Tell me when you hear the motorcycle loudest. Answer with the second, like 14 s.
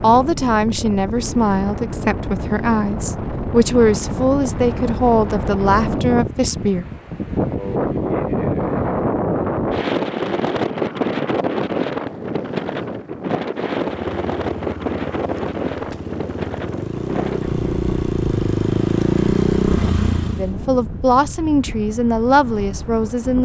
19 s.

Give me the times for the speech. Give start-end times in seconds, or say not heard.
0.0-6.8, 20.4-23.4.